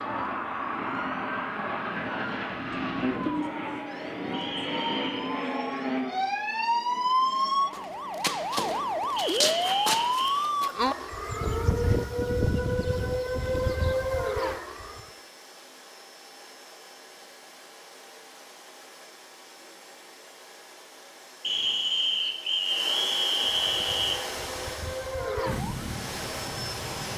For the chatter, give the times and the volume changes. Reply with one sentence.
You can't hear the chatter here.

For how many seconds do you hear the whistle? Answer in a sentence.
You can hear the whistle for 5 seconds altogether.